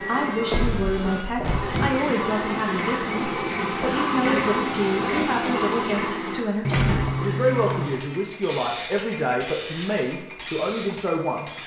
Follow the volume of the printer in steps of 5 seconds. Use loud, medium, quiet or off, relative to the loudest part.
loud, loud, medium.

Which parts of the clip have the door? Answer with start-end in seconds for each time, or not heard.
0.5-2.0, 6.7-8.0.